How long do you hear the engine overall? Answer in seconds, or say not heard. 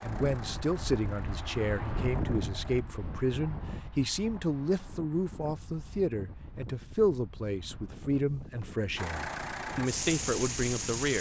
5 s.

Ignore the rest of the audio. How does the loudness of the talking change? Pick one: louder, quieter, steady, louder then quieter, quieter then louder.
steady.